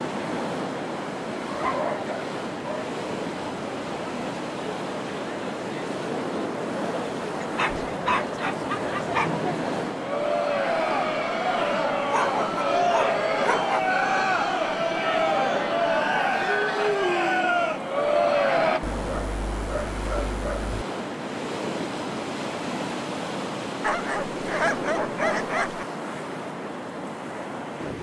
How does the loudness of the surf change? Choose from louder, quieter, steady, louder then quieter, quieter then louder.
steady.